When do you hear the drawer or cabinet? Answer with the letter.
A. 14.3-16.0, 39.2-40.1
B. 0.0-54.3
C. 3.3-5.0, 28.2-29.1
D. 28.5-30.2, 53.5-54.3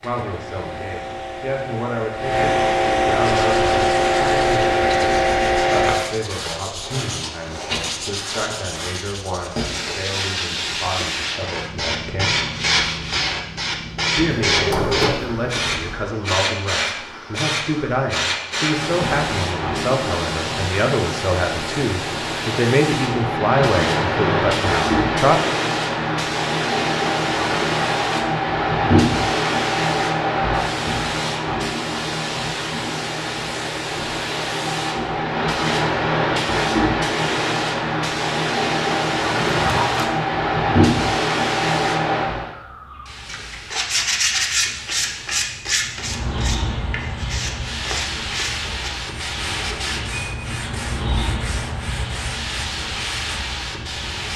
A.